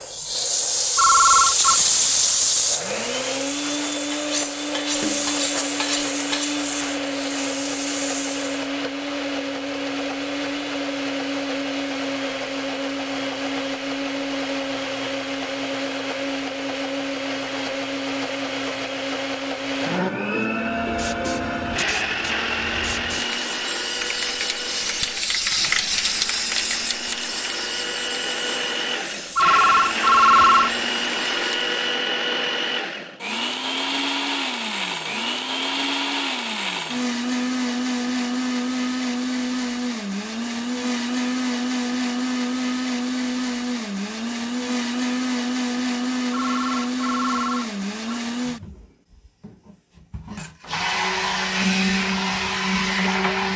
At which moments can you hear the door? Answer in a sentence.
You can't hear the door here.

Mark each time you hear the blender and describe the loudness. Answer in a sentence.
You can hear the blender from 0.0 to 53.5 s, at a steady volume.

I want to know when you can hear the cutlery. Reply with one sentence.
You can hear the cutlery from 4.1 to 6.7 s.